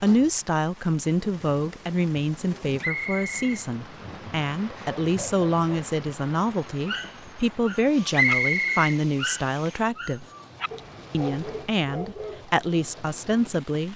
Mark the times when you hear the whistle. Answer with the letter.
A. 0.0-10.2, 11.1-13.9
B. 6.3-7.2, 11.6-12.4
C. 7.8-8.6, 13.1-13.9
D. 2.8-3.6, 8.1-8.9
D.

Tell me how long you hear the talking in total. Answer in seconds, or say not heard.
13 s.